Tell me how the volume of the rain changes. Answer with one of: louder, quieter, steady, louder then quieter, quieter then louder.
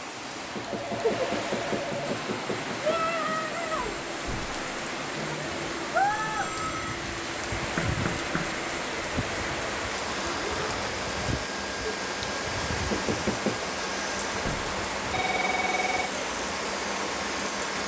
steady.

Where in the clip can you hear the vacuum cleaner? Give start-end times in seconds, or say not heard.
2.0-17.8.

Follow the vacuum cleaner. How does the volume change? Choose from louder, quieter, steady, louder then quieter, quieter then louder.
steady.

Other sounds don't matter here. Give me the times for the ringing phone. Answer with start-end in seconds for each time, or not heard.
0.7-2.1, 6.1-7.0, 14.4-16.1.